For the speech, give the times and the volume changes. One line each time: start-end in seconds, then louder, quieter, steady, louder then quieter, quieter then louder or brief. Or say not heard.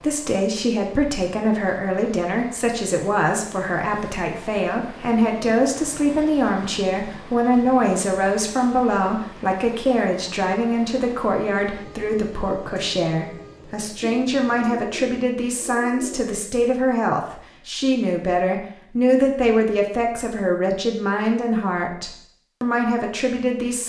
0.0-23.8 steady.